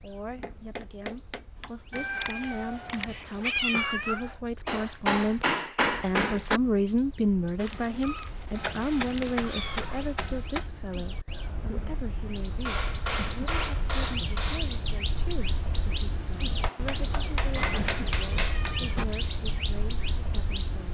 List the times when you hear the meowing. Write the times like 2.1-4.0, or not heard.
1.9-4.3, 7.5-10.2, 17.6-19.1.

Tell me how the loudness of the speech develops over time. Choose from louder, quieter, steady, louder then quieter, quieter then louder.
louder then quieter.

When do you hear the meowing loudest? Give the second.
4 s.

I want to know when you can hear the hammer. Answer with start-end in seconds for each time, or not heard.
0.4-2.0, 4.7-6.6, 8.5-10.7, 12.7-14.7, 16.6-18.8.